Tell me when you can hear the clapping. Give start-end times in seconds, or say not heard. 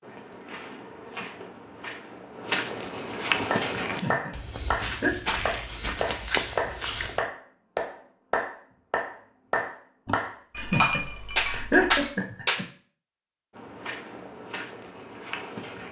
3.5-12.7.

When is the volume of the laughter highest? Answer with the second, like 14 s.
12 s.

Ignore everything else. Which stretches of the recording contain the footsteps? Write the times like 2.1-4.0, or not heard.
0.0-7.2, 13.5-15.8.